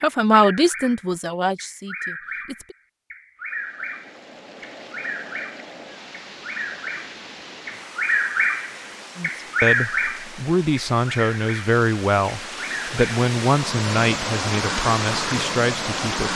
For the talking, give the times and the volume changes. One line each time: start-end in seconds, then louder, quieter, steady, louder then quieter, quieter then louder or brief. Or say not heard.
0.0-2.8 brief
9.2-16.3 steady.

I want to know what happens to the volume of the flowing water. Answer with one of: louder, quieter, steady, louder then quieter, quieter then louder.
louder.